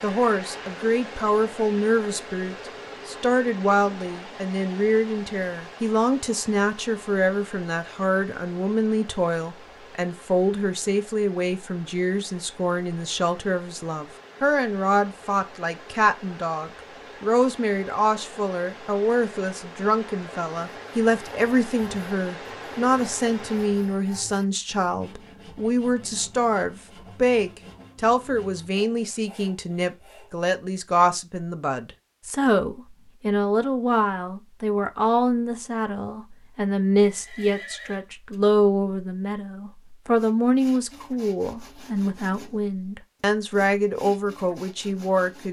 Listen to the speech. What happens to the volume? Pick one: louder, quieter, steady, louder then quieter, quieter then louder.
steady.